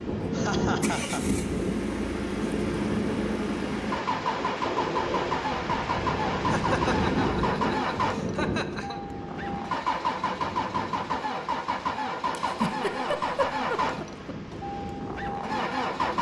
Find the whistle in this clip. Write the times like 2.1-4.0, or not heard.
not heard.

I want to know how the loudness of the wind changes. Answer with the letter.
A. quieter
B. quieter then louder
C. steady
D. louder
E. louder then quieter
A.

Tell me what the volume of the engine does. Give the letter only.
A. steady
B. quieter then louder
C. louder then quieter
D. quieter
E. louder
A.